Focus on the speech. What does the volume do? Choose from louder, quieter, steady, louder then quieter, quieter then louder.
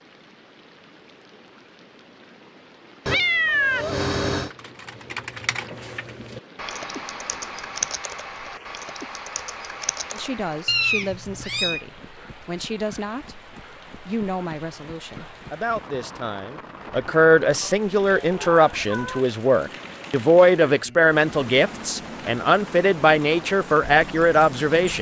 louder.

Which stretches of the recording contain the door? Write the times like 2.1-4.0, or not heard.
not heard.